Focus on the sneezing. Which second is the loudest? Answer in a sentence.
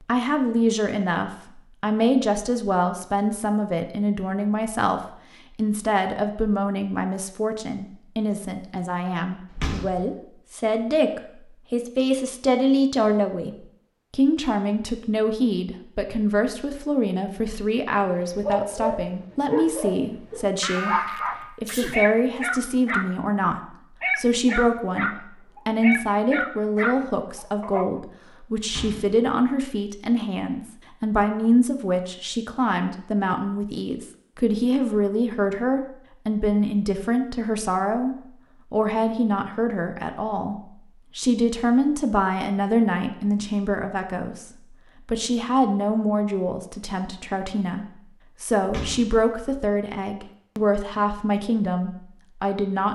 The volume of the sneezing peaks at 21 seconds.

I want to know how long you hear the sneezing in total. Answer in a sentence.
The sneezing can be heard for 2 seconds in total.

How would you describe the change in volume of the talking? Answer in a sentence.
The loudness of the talking stays about the same.